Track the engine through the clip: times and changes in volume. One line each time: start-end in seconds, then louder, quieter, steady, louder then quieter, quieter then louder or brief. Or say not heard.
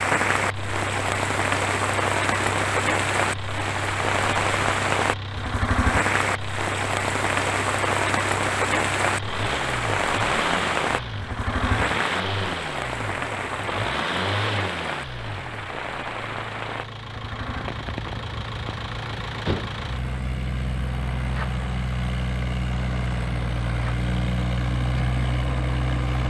0.2-26.2 louder.